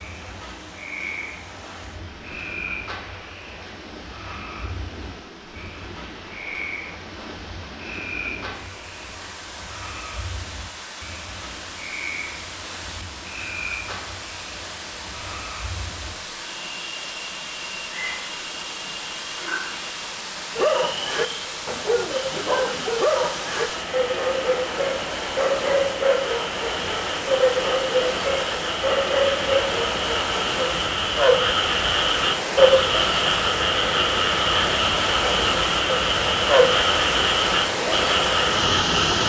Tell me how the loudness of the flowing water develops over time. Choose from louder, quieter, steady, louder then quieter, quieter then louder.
louder.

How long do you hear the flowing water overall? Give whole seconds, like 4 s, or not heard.
39 s.